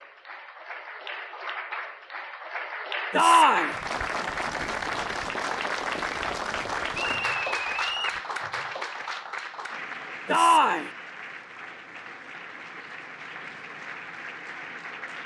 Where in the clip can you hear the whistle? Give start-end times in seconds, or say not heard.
7.0-8.2.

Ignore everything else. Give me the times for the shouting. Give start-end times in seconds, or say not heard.
3.1-3.8, 10.2-10.9.